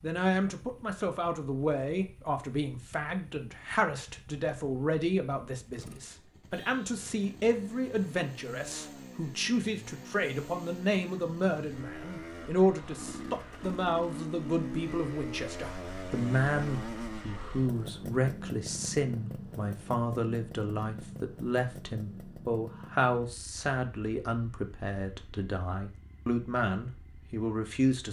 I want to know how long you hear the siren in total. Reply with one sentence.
You can't hear the siren here.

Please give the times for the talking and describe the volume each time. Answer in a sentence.
You can hear the talking from 0.0 to 28.0 s, at a steady volume.